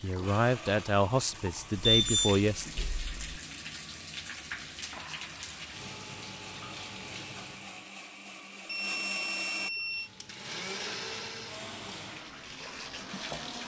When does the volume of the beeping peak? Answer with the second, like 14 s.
2 s.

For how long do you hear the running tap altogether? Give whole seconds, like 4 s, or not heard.
12 s.